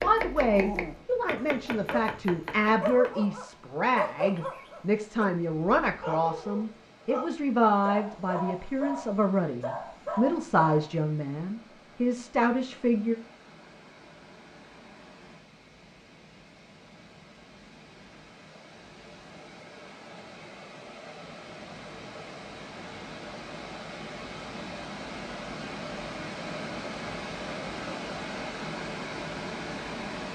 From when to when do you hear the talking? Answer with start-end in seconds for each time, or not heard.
0.0-13.2.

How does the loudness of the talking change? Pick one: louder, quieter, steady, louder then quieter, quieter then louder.
steady.